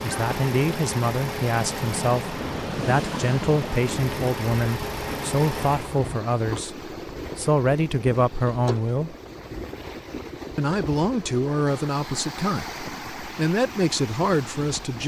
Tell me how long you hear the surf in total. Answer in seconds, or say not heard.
15 s.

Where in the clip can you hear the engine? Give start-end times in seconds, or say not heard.
0.0-6.2.